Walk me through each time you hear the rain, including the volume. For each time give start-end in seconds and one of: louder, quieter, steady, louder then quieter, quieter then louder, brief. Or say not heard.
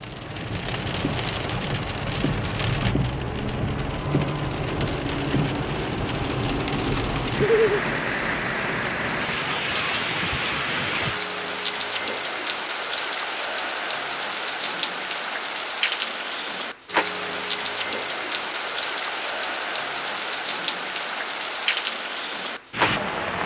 0.0-23.4 steady.